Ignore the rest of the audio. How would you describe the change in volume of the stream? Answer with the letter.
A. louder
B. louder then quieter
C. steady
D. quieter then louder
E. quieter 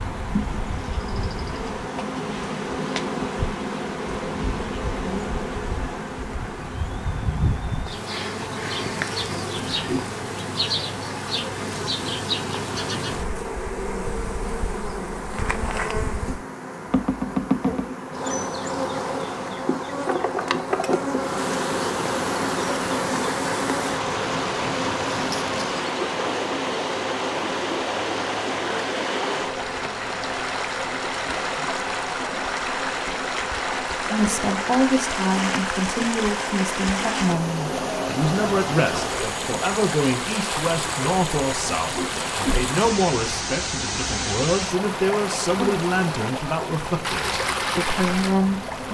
A.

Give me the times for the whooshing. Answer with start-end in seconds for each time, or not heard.
9.7-10.2, 41.6-42.7.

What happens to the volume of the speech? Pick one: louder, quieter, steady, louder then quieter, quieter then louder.
steady.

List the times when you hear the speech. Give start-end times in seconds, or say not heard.
34.1-48.6.